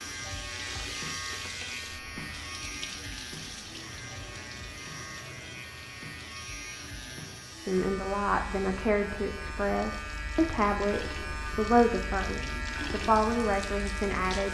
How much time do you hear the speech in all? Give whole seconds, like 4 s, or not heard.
7 s.